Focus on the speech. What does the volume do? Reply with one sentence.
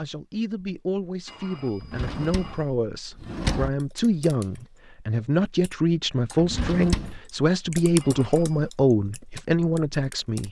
The volume of the speech goes up.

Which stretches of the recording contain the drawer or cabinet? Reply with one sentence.
You can hear the drawer or cabinet from 1.8 to 3.7 s and from 6.4 to 7.2 s.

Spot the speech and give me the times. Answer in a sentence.
You can hear the speech from 0.0 to 10.4 s.